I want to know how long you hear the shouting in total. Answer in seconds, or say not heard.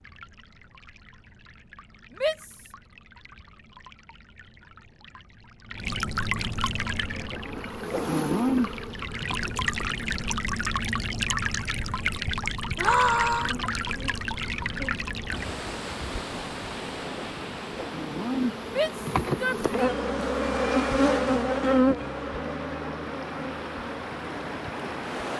2 s.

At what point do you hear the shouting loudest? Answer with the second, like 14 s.
13 s.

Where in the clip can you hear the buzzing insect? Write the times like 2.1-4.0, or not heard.
7.0-10.2, 13.3-25.3.